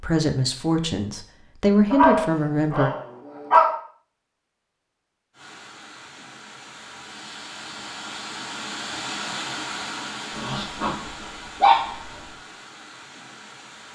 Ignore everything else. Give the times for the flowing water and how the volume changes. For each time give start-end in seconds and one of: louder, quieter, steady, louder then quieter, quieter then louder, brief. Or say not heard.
5.3-13.9 louder then quieter.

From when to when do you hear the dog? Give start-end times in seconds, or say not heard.
1.9-3.8, 10.3-12.3.